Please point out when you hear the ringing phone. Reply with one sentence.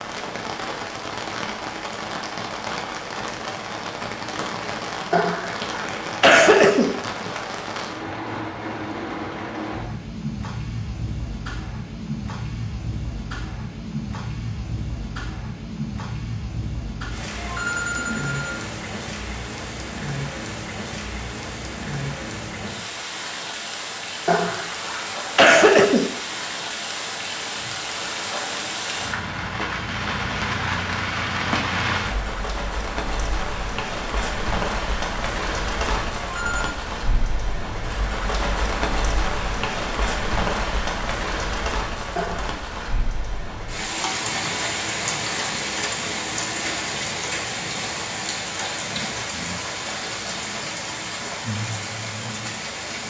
The ringing phone can be heard from 17.4 to 18.5 s and from 36.1 to 36.8 s.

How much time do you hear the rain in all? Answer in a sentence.
You can hear the rain for 53 seconds altogether.